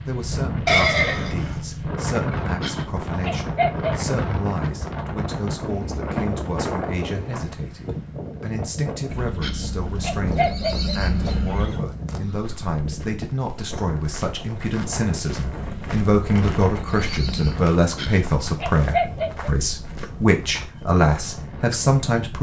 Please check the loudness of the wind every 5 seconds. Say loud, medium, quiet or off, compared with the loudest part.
loud, loud, medium, medium, medium.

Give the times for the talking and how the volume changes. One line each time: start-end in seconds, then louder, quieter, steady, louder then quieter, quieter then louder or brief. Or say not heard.
0.1-22.3 louder.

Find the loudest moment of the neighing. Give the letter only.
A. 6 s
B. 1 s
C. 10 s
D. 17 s
B.